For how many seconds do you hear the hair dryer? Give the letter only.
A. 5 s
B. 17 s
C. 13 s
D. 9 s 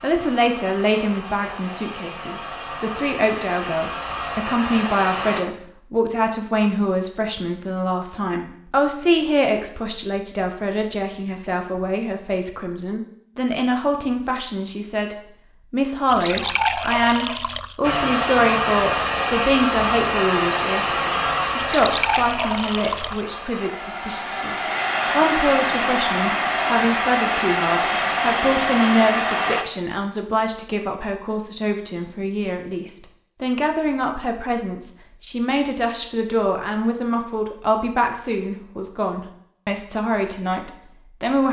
B.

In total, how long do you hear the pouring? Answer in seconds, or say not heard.
3 s.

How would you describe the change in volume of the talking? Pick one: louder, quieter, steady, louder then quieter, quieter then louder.
steady.